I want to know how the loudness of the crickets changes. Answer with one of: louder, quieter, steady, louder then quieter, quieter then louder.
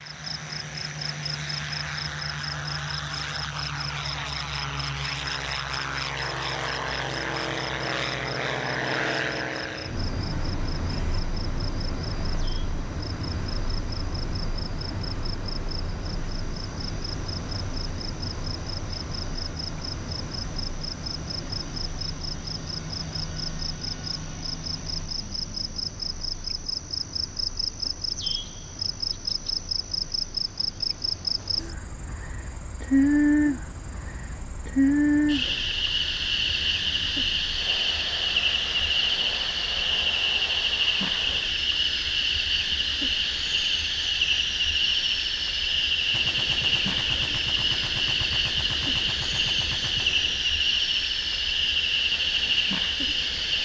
louder.